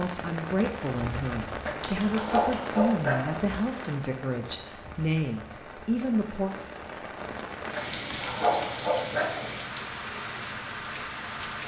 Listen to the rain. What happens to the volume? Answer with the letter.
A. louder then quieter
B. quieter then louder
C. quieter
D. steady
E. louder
B.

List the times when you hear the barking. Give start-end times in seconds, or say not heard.
1.6-3.5, 7.7-9.5.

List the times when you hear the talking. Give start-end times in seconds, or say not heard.
0.0-6.5.